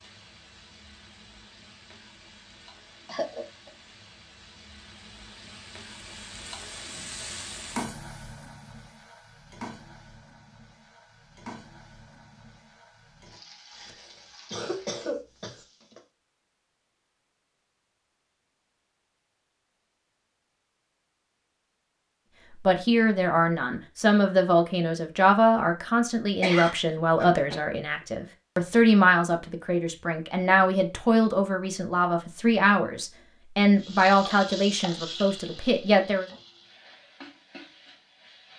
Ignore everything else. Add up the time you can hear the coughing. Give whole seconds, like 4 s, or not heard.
4 s.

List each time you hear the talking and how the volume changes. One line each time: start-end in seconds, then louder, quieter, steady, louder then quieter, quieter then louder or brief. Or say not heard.
22.5-36.2 steady.